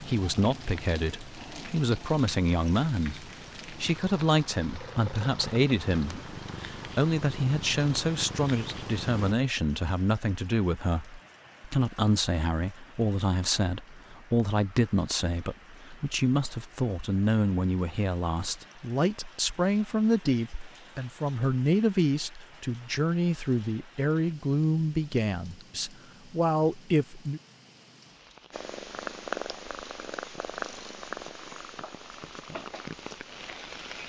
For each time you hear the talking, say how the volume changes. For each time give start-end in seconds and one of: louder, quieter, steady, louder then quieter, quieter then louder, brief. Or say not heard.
0.0-27.4 steady.